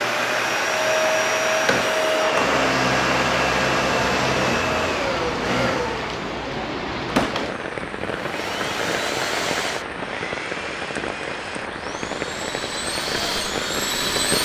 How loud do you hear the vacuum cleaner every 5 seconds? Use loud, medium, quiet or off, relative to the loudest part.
loud, medium, medium.